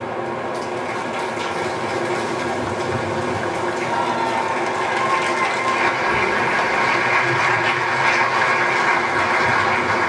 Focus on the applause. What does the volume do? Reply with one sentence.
The loudness of the applause goes up.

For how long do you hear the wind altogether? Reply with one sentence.
You can hear the wind for 10 seconds altogether.